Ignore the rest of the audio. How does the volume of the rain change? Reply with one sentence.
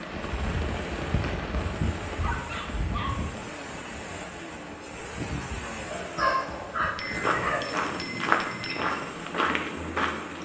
The loudness of the rain goes down.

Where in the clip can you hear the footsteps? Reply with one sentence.
You can hear the footsteps from 7.0 to 10.4 s.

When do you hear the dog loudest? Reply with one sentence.
The loudest moment of the dog is at 6 seconds.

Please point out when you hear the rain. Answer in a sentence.
You can hear the rain from 0.0 to 7.0 s.